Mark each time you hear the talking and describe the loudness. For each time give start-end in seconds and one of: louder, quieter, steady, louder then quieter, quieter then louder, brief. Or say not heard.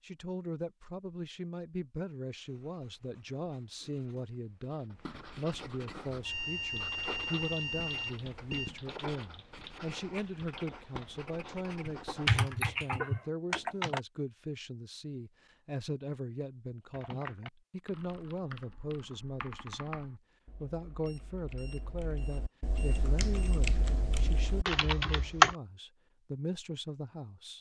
0.0-27.5 steady.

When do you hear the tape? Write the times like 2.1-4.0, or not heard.
not heard.